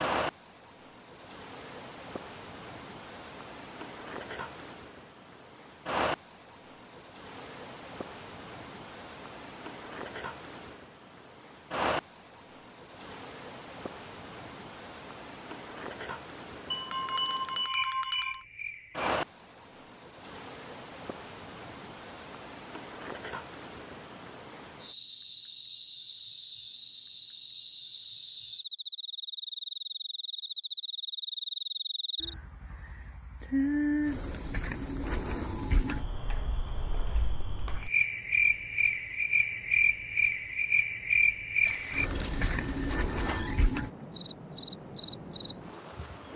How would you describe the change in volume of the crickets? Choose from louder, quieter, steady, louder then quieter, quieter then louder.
louder.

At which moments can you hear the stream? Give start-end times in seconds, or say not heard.
not heard.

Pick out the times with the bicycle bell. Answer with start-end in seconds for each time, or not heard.
16.7-18.4, 41.6-43.6.